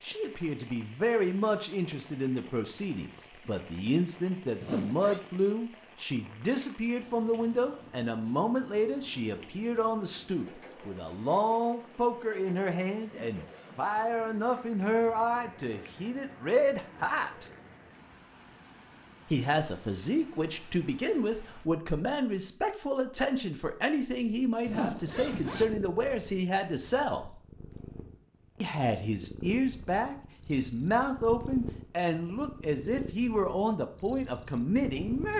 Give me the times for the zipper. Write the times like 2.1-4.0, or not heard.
4.6-5.2, 13.0-14.5, 24.6-25.8.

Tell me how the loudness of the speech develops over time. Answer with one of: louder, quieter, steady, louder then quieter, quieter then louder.
steady.